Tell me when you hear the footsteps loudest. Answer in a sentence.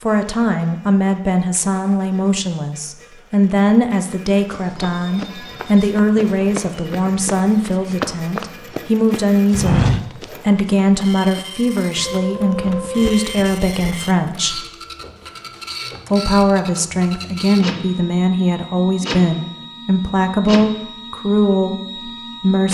The volume of the footsteps peaks at 10 seconds.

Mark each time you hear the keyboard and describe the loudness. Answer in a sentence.
The keyboard can't be heard in this clip.